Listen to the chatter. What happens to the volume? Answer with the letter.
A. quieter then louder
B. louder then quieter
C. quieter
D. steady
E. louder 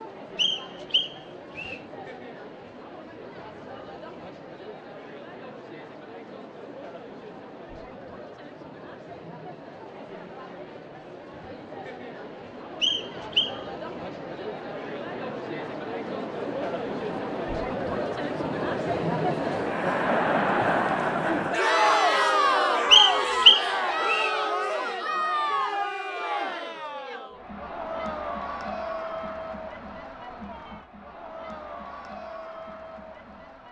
B.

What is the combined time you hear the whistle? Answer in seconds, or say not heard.
4 s.